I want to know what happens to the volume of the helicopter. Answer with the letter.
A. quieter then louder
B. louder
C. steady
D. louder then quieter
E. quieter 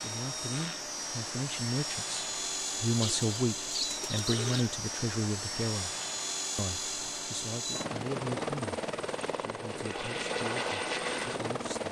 C.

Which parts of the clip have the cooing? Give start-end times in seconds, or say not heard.
3.0-4.8.